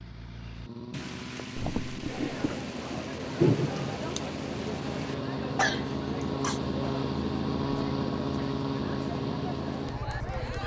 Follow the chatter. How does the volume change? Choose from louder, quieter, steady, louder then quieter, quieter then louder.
steady.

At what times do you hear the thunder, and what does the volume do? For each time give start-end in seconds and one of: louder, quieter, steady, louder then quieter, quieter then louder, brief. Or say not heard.
0.9-5.2 louder then quieter.